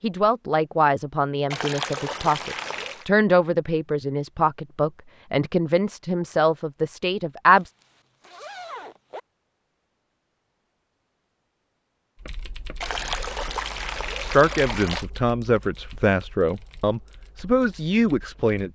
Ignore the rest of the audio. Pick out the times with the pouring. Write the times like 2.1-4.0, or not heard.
1.5-3.0, 12.8-15.1.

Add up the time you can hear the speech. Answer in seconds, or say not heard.
12 s.